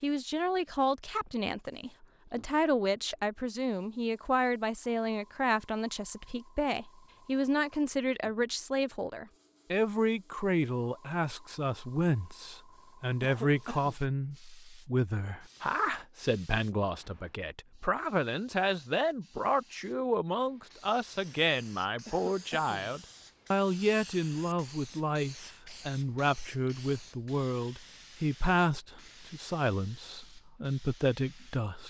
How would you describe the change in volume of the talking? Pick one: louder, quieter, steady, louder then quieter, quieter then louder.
steady.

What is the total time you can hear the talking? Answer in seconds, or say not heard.
32 s.